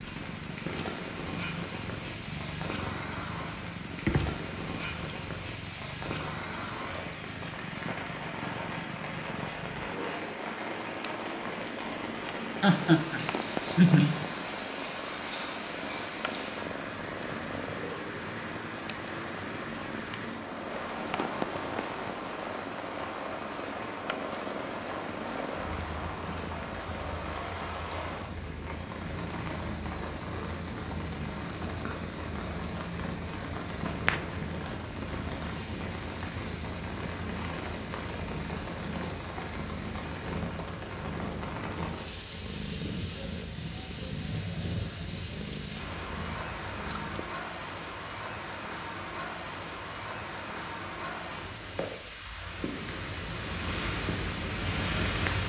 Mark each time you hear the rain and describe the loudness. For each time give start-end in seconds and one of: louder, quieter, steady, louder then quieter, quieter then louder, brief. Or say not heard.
0.0-55.4 steady.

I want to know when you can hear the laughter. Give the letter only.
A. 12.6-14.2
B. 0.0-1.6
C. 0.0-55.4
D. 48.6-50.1
A.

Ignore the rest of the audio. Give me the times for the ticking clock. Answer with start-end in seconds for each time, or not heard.
not heard.